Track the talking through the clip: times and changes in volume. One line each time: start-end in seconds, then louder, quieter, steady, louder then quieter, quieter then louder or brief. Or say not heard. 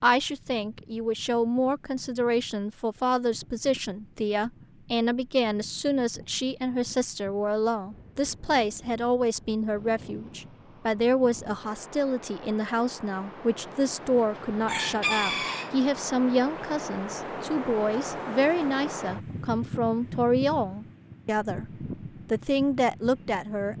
0.0-23.7 steady.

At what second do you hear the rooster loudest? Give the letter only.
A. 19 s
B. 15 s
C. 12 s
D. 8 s
B.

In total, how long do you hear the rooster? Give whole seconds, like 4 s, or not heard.
2 s.